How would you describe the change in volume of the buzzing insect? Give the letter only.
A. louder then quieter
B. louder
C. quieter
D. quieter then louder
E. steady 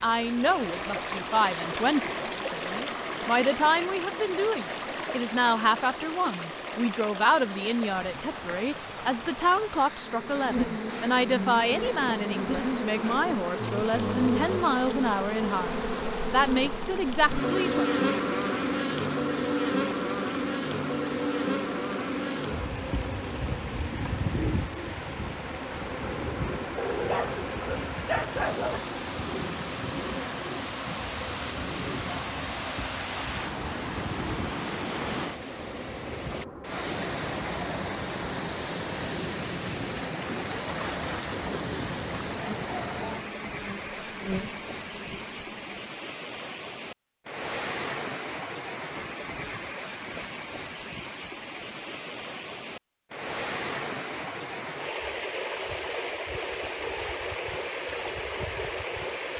C.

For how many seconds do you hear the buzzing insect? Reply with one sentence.
You can hear the buzzing insect for 36 seconds altogether.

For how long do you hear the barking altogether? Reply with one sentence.
The barking can be heard for 2 seconds in total.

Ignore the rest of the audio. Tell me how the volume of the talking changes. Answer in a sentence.
The volume of the talking stays about the same.